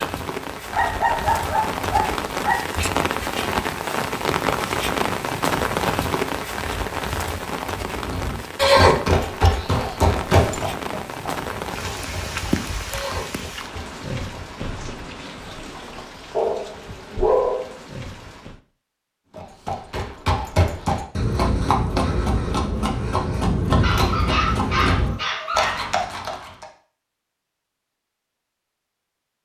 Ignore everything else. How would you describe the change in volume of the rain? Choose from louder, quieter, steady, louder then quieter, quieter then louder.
quieter.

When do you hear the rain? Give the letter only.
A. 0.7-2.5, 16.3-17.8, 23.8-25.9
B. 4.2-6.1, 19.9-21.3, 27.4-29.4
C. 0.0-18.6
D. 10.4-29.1
C.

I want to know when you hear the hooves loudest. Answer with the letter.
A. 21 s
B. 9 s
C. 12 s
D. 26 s
B.